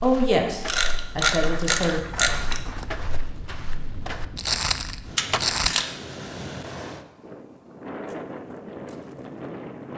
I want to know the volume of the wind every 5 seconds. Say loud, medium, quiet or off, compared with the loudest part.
medium, loud.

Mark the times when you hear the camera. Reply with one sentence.
You can hear the camera from 0.7 to 3.0 s and from 5.2 to 5.9 s.